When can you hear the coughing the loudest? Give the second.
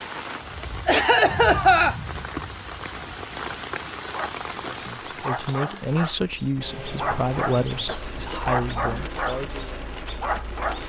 2 s.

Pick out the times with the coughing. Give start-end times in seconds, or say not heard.
0.8-2.4, 6.6-8.6.